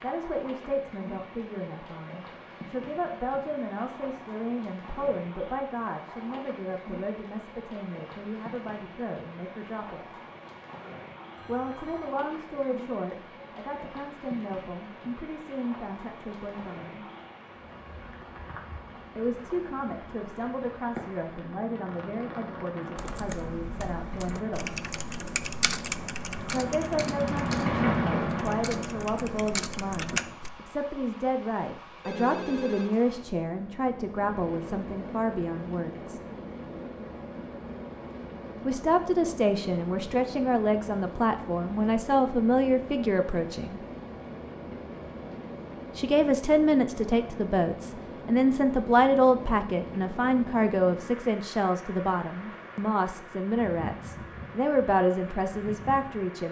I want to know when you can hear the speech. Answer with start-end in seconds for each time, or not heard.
0.0-10.1, 11.4-17.1, 19.1-24.7, 26.4-36.2, 38.6-43.8, 46.0-56.4.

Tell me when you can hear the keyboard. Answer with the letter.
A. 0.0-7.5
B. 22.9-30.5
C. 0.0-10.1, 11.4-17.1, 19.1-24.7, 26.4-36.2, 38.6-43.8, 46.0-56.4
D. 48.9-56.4
B.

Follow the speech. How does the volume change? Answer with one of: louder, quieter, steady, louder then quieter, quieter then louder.
louder.